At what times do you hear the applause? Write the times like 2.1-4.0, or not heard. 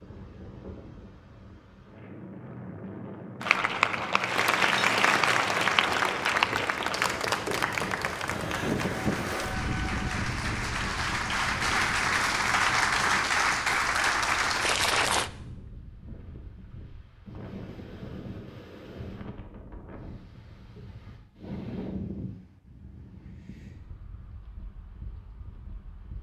3.4-15.3.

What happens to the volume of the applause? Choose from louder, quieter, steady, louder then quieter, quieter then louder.
quieter then louder.